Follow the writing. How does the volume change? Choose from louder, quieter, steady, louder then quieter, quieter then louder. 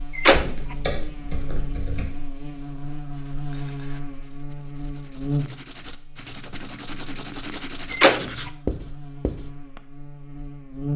louder.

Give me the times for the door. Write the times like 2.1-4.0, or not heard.
0.1-0.8, 7.9-8.5.